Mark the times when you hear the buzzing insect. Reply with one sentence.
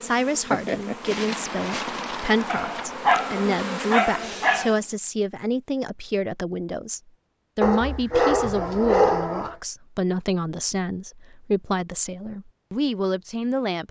The buzzing insect can be heard from 0.0 to 5.0 s.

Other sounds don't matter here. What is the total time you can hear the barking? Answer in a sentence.
You can hear the barking for 4 seconds altogether.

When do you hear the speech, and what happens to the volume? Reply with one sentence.
The speech can be heard from 0.0 to 13.8 s, at a steady volume.